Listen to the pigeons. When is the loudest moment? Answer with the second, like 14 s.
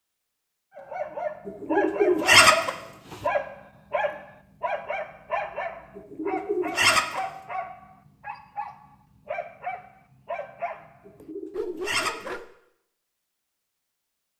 2 s.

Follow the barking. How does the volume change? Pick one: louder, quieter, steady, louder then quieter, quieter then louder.
quieter.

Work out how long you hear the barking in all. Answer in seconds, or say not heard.
12 s.